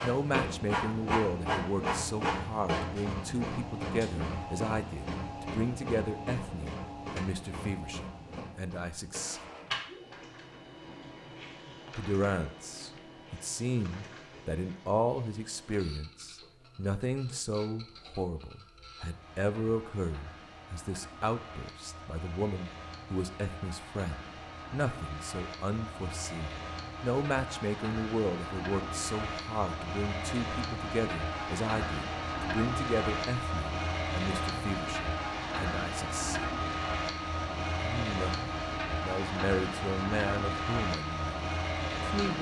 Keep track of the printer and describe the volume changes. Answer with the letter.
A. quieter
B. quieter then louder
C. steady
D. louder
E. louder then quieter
B.